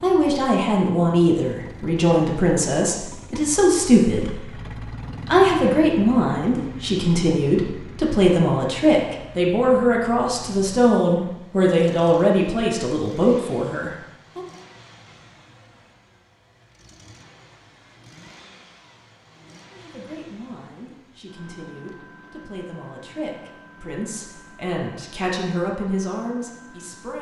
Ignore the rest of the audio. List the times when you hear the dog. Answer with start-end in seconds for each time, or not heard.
not heard.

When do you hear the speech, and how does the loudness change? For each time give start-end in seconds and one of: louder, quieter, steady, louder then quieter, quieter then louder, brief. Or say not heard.
0.0-14.4 steady
19.7-27.1 louder.